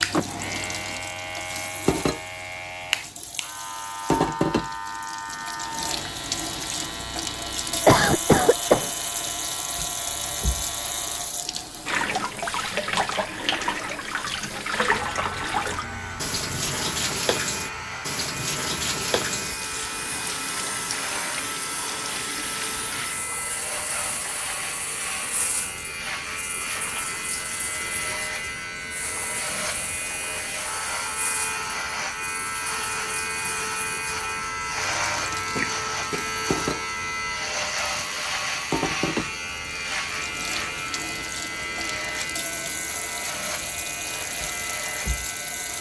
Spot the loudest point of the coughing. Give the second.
8 s.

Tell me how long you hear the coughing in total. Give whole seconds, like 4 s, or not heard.
2 s.